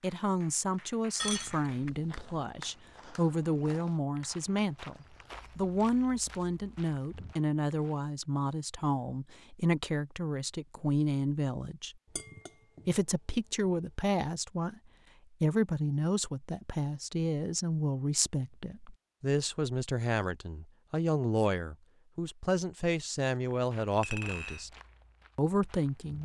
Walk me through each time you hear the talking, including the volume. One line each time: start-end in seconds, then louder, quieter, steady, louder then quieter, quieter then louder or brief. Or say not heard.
0.0-11.9 steady
12.8-14.8 brief
15.4-24.7 steady
25.4-26.2 brief.